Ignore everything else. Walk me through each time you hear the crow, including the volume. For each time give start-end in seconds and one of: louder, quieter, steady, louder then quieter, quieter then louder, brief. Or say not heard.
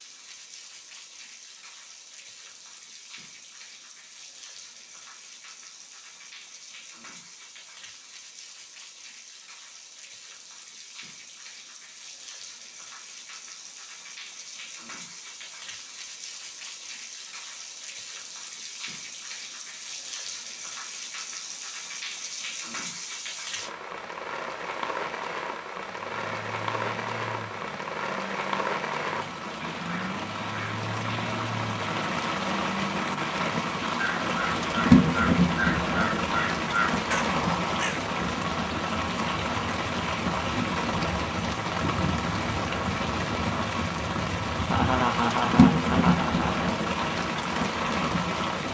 25.8-38.1 louder.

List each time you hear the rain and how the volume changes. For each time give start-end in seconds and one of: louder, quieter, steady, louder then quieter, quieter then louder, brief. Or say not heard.
0.0-48.7 louder.